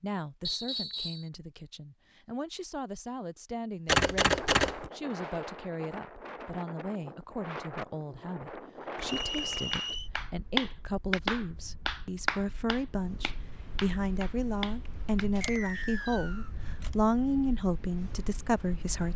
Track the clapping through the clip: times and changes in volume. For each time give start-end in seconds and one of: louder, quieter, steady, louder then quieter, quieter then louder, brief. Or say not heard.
9.7-15.4 quieter then louder.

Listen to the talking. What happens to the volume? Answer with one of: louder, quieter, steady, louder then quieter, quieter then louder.
louder.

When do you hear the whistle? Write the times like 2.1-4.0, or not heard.
0.5-1.2, 9.1-10.1, 15.4-16.5.